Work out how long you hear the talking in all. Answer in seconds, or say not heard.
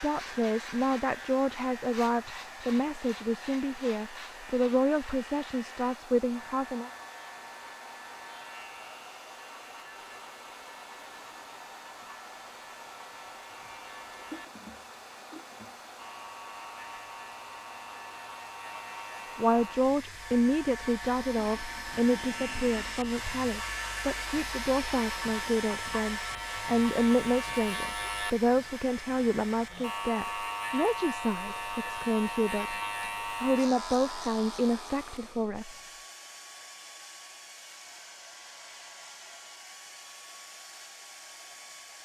23 s.